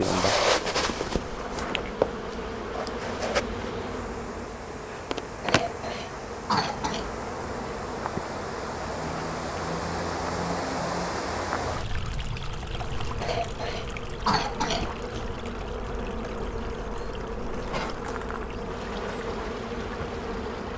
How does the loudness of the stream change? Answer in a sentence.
The volume of the stream goes up, then down.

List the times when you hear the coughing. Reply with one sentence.
The coughing can be heard from 5.4 to 7.0 s and from 13.2 to 15.3 s.